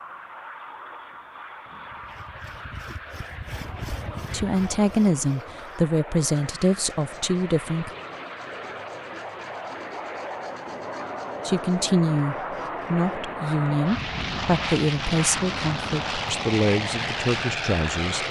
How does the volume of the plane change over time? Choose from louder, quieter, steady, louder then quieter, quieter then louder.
louder.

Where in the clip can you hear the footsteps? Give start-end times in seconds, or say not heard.
not heard.